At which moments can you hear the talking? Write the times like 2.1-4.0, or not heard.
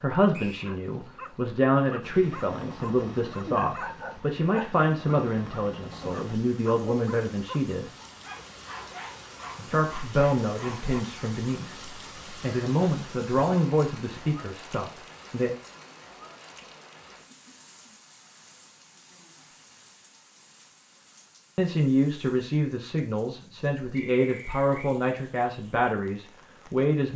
0.0-7.9, 9.7-15.6, 21.6-27.1.